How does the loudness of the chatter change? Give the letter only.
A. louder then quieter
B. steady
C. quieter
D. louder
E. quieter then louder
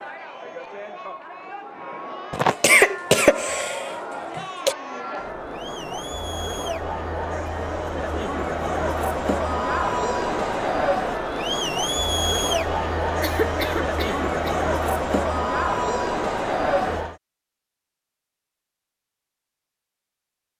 D.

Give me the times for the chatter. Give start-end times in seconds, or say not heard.
0.0-17.1.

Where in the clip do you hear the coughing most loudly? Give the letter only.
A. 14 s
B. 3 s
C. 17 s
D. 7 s
B.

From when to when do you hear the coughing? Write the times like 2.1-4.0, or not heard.
2.3-4.8, 13.2-14.7.